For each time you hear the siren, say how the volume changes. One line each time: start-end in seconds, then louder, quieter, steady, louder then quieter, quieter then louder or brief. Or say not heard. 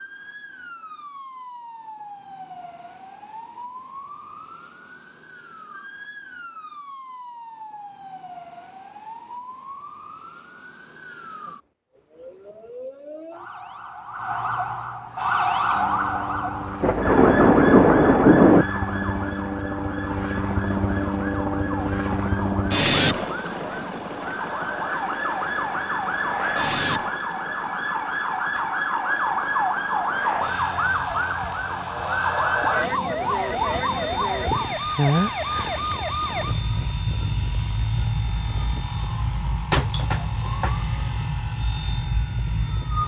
0.0-43.0 louder.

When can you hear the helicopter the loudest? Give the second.
23 s.